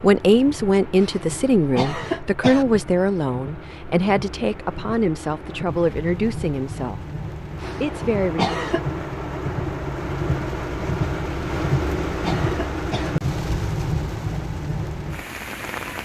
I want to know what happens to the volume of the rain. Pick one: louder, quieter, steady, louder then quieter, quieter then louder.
louder.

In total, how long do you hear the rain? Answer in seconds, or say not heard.
16 s.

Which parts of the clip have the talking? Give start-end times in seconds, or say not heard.
0.0-7.0, 7.8-8.6.